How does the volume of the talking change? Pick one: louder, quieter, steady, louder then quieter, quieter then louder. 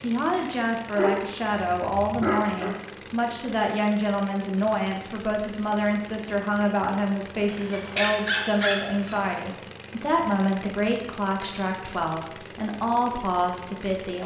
steady.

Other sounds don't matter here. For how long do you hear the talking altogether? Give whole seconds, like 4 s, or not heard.
14 s.